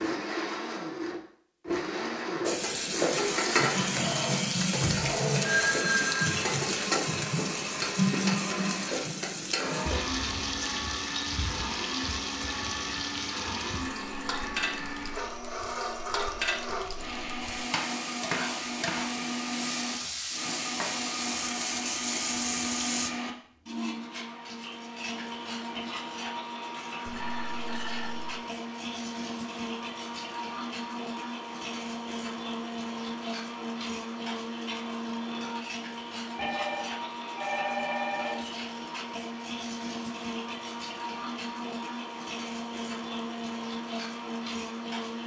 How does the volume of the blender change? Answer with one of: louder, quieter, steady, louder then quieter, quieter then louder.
steady.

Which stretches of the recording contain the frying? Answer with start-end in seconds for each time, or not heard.
2.4-23.1.